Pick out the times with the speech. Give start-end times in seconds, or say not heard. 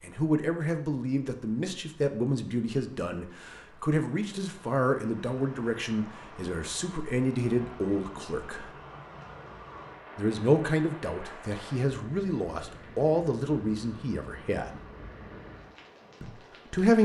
0.0-8.7, 10.2-14.8, 16.2-17.0.